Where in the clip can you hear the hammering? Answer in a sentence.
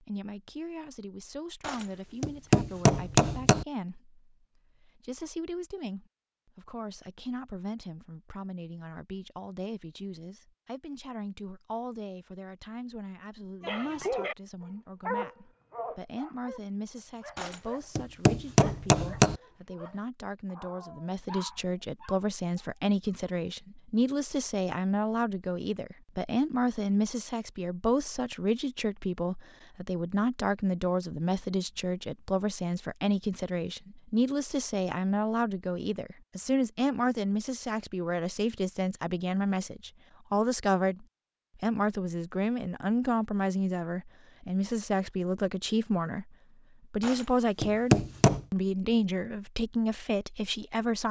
You can hear the hammering from 1.6 to 3.6 s, from 17.4 to 19.4 s and from 47.0 to 48.4 s.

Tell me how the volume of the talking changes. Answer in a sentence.
The volume of the talking goes up.